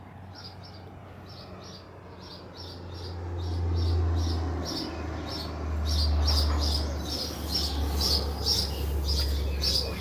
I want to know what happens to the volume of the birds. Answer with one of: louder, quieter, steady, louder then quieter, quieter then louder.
louder.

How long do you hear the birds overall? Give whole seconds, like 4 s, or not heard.
10 s.